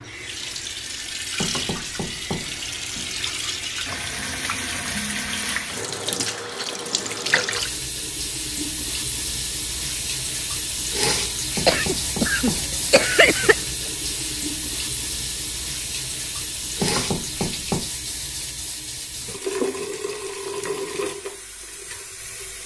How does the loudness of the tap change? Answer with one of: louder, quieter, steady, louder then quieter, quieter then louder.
steady.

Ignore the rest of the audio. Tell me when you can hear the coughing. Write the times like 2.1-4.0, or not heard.
11.7-13.8.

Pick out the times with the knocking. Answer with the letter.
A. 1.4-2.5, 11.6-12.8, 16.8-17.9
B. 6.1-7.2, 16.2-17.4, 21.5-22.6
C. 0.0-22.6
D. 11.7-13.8
A.